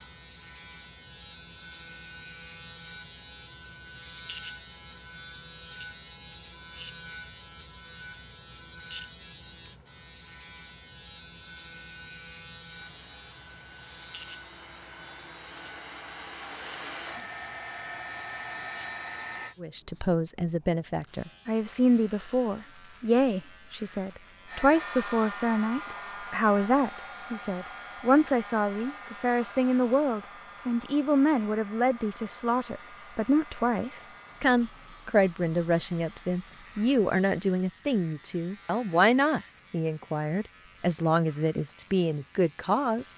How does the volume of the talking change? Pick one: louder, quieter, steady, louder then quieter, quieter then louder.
steady.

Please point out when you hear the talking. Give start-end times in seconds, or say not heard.
19.6-43.1.